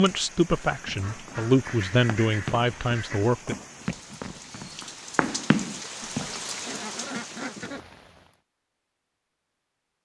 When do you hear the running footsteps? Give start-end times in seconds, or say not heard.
0.8-6.3.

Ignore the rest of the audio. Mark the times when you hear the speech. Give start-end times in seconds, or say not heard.
0.0-3.5.